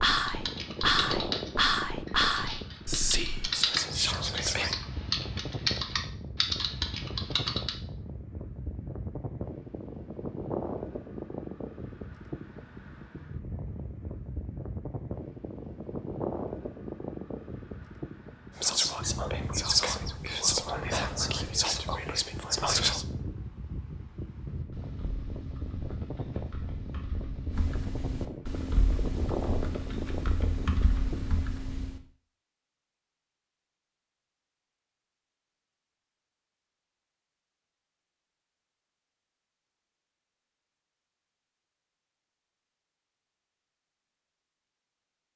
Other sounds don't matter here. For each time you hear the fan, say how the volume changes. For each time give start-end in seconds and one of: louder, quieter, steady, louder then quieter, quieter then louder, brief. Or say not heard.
0.0-31.4 steady.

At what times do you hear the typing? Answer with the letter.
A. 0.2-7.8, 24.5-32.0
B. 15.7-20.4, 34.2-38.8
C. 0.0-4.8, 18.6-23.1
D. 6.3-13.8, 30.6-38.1
A.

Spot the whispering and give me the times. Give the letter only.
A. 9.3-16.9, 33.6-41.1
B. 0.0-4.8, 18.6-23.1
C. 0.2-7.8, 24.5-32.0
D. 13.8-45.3
B.